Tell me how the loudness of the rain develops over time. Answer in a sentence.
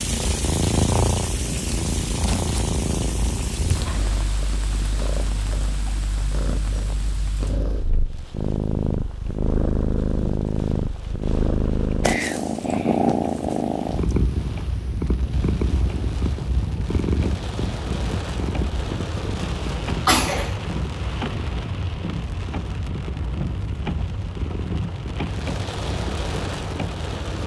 The volume of the rain goes down, then up.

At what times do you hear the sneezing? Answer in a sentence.
The sneezing can be heard from 19.4 to 20.6 s.